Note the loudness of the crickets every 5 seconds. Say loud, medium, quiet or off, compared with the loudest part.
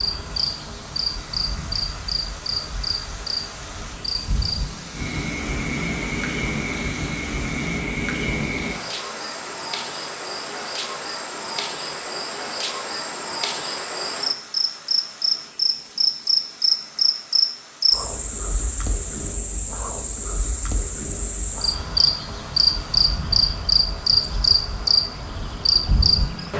medium, medium, medium, loud, loud, loud.